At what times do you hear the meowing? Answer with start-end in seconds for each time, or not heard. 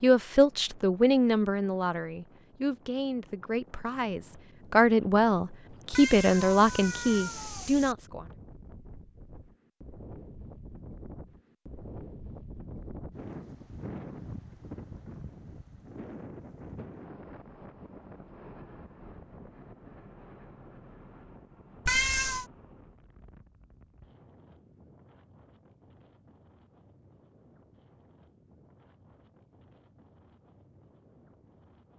5.9-8.0, 21.9-22.4.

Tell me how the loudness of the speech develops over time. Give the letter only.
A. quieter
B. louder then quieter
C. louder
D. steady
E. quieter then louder
E.